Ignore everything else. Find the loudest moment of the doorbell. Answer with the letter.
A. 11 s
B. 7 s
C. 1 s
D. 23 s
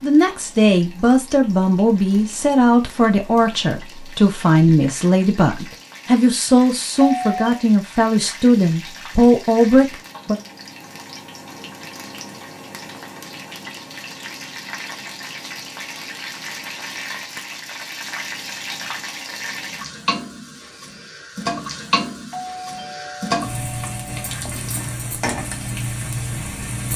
B.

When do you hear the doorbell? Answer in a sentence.
You can hear the doorbell from 7.0 to 7.5 s and from 22.3 to 24.3 s.